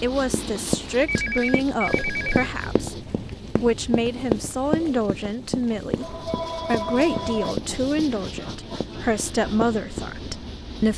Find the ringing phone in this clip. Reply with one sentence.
You can hear the ringing phone from 1.1 to 2.5 s and from 6.0 to 7.5 s.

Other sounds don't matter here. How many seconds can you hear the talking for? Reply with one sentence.
You can hear the talking for 10 seconds altogether.